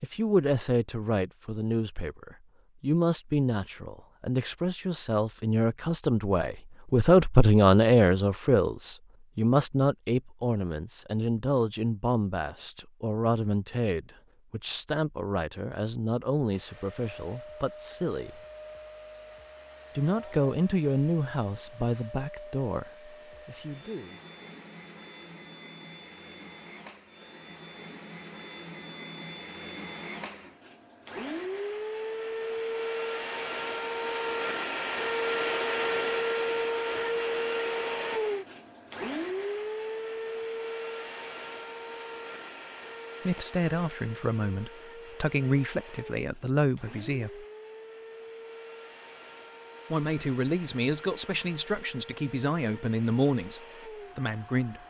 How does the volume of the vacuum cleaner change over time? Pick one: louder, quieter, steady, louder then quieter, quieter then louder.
louder then quieter.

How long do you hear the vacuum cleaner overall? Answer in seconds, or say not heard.
38 s.